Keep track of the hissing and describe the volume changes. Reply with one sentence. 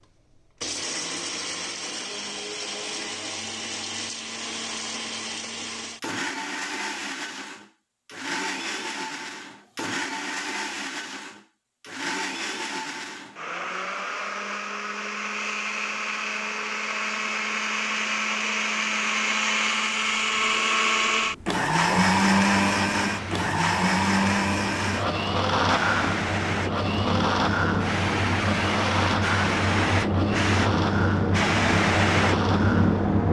The loudness of the hissing goes up.